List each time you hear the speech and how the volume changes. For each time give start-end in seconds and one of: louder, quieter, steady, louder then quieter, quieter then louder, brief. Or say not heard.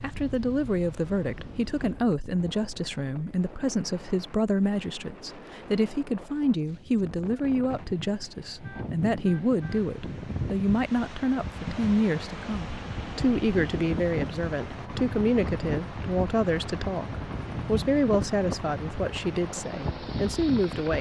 0.0-20.9 steady.